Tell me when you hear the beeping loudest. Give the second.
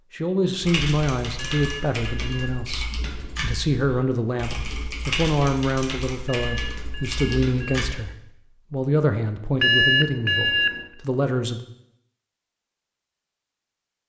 10 s.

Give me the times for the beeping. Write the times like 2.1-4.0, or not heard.
1.4-2.7, 6.2-7.8, 9.6-10.8.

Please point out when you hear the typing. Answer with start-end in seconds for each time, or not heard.
0.6-8.0.